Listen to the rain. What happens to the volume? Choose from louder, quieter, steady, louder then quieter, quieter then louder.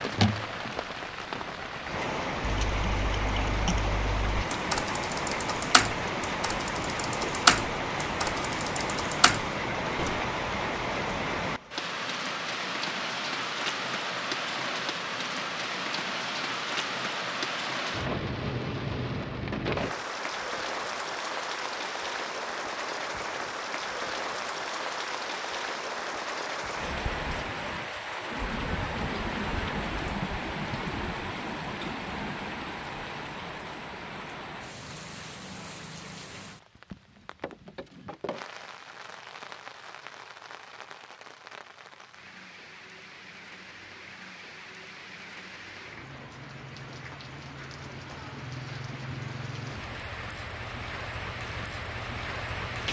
quieter.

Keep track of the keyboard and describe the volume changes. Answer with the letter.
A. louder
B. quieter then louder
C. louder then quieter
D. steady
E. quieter
C.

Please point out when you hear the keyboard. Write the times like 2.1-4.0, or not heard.
2.4-10.3.